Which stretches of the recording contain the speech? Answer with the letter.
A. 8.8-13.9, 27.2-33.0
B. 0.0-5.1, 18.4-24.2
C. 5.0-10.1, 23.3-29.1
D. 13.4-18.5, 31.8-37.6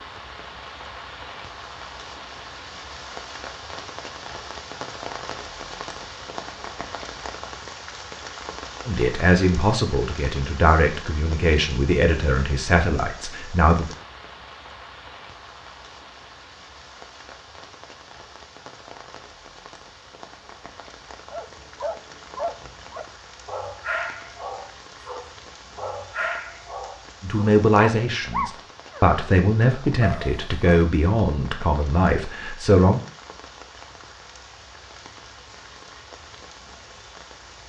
A.